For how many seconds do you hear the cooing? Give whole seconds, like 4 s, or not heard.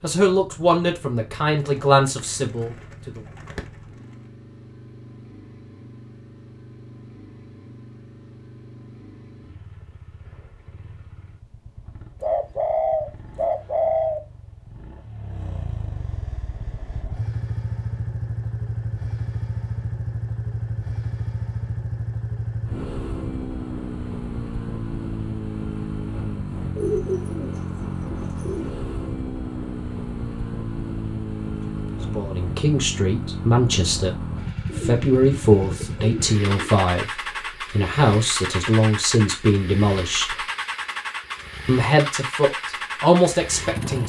8 s.